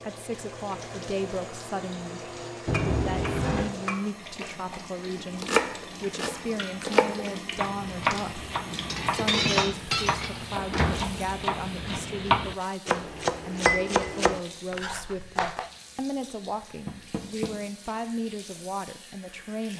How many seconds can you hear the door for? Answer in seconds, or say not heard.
2 s.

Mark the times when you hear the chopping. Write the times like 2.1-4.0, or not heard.
5.2-15.7.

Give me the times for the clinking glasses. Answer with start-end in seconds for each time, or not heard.
2.7-4.0, 8.8-10.4, 13.7-14.2.